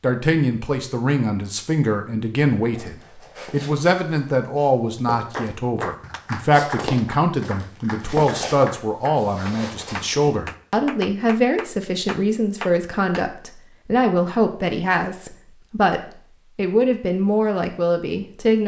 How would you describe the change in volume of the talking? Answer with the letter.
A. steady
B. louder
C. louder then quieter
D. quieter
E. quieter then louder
A.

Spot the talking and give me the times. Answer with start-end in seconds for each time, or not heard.
0.0-18.6.